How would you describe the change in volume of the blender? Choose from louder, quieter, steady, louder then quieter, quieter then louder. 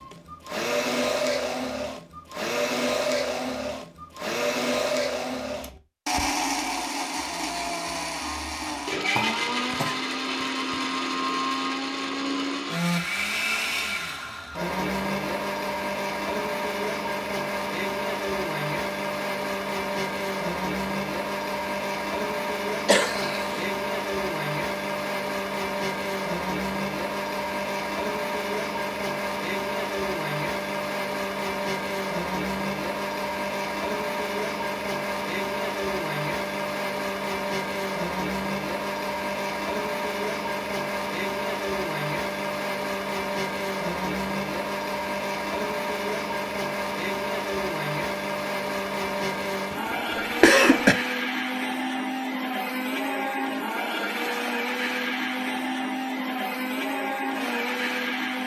steady.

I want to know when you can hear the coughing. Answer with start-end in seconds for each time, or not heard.
8.7-10.0, 22.9-23.6, 49.7-51.0.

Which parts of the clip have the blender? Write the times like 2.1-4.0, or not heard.
0.0-58.4.